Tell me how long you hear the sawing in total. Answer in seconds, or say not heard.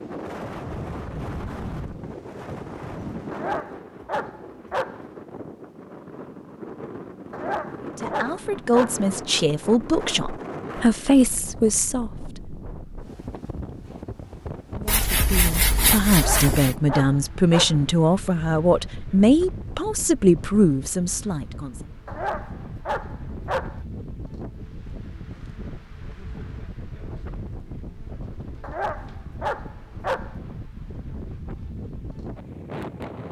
2 s.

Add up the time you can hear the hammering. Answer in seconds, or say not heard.
not heard.